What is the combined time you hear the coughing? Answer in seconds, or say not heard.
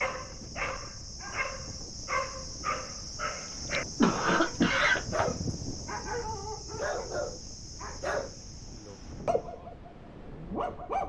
2 s.